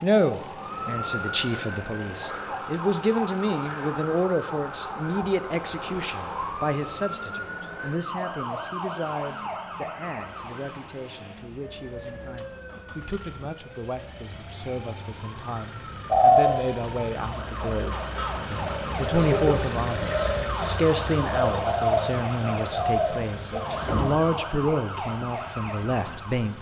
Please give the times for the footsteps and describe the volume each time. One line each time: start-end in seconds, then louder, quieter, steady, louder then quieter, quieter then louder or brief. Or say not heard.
not heard.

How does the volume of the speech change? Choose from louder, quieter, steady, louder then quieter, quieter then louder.
quieter then louder.